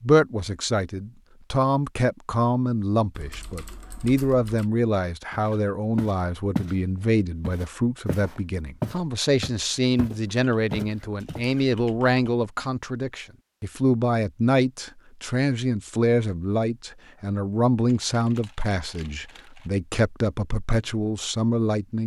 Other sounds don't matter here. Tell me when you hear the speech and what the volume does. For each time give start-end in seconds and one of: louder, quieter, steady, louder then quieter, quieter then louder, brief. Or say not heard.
0.0-22.0 steady.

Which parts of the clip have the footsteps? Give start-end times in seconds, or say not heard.
5.3-6.8, 7.4-11.6.